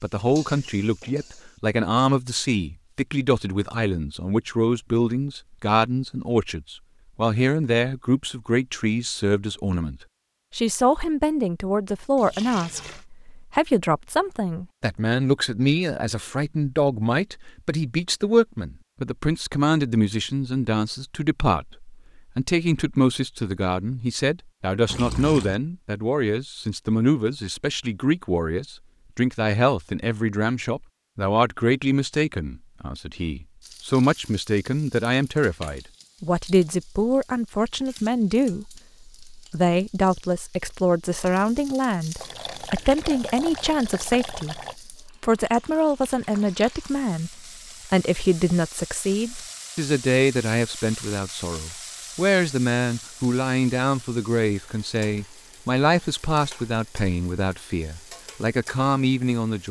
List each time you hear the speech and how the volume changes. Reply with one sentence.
You can hear the speech from 0.0 to 59.6 s, at a steady volume.